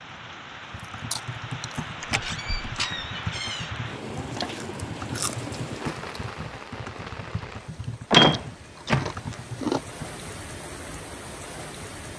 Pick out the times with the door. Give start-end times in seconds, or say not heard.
2.0-3.6, 8.1-9.4.